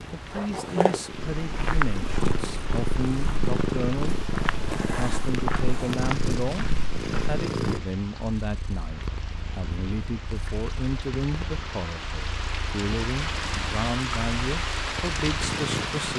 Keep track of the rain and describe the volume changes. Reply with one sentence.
The loudness of the rain goes up.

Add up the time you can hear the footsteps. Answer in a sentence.
The footsteps can be heard for 6 seconds in total.